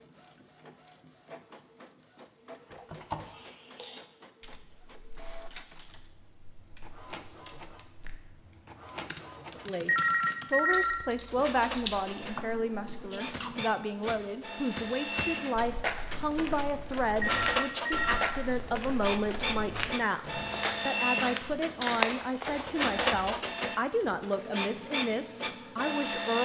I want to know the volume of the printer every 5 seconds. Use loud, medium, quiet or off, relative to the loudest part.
quiet, quiet, medium, loud, loud, loud.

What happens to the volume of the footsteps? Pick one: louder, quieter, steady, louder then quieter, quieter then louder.
louder.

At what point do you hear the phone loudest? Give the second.
10 s.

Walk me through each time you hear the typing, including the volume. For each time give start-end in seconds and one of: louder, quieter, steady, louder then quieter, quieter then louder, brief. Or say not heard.
2.6-13.7 quieter then louder.